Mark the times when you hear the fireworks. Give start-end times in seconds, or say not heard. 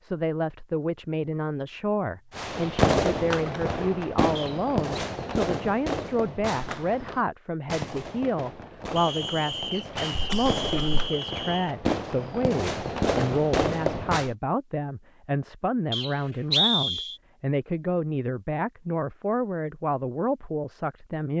2.4-14.3.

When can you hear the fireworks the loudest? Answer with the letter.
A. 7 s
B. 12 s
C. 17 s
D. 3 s
D.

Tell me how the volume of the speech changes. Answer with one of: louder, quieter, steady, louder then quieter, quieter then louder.
steady.